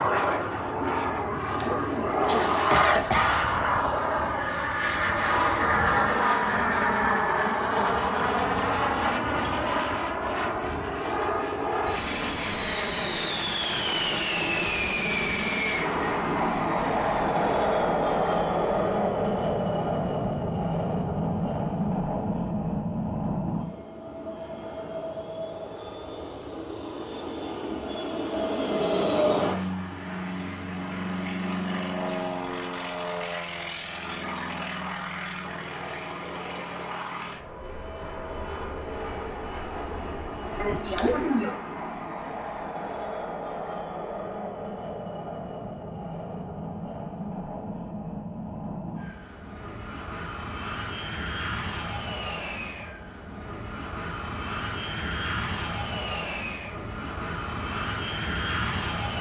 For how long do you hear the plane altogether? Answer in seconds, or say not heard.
59 s.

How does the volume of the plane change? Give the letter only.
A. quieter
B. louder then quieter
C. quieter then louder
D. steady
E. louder
A.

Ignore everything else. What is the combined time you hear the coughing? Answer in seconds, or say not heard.
3 s.